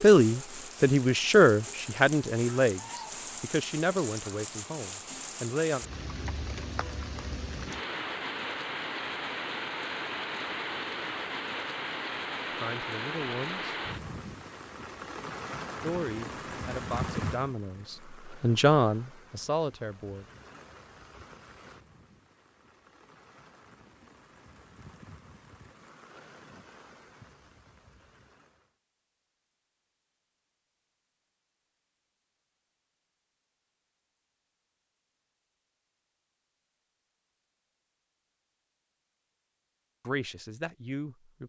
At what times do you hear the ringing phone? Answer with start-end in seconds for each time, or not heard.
not heard.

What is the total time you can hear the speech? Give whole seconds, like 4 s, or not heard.
13 s.